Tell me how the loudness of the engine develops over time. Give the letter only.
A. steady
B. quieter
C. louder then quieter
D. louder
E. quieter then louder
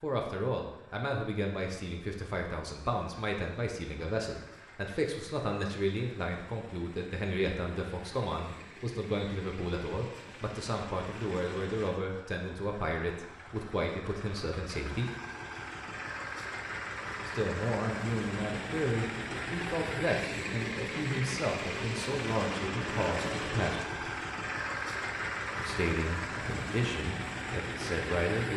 D.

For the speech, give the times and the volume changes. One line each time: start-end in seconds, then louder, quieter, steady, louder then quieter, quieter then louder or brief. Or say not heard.
0.0-15.1 steady
17.2-24.1 steady
25.6-28.5 brief.